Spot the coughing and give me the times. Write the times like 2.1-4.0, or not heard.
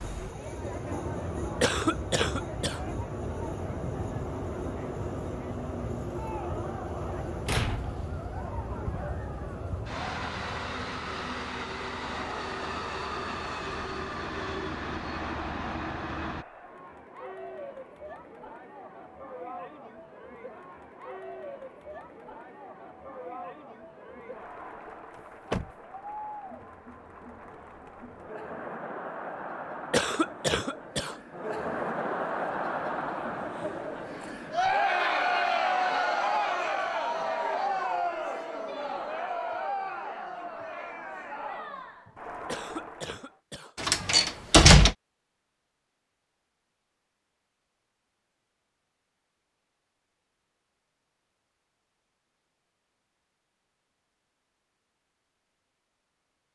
1.6-2.8, 29.9-31.1, 42.5-43.8.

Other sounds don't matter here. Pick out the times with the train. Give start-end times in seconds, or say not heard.
0.0-16.4.